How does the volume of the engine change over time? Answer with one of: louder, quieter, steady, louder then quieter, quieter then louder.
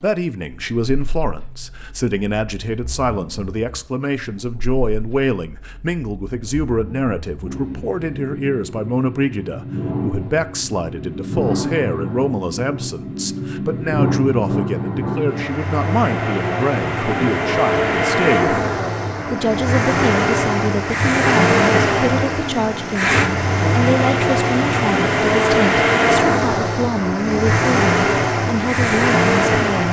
louder.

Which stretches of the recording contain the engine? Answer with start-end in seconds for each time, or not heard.
0.0-29.8.